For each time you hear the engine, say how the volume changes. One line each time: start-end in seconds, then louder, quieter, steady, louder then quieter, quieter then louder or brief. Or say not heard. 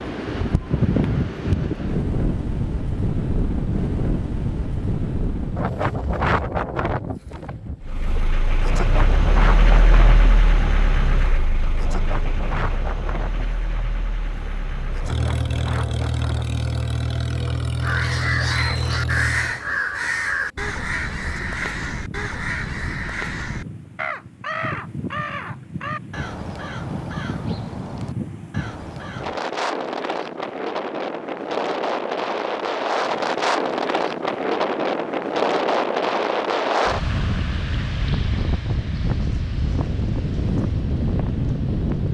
7.8-19.6 quieter then louder.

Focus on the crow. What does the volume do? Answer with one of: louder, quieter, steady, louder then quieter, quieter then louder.
quieter.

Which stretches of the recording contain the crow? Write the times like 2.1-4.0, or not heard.
17.8-29.4.